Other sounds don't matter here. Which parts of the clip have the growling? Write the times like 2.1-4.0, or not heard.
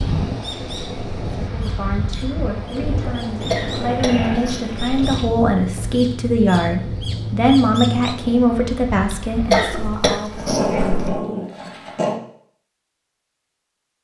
3.4-5.2, 9.5-12.2.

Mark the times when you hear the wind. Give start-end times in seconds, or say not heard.
0.0-10.1.